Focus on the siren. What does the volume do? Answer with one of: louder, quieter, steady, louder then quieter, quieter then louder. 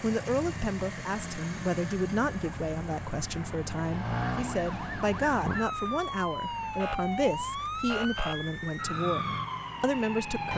louder.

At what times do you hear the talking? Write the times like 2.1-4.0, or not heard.
0.0-10.5.